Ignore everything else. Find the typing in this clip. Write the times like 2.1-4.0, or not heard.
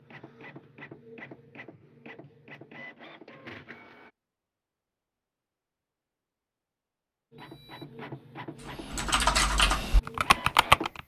8.7-11.0.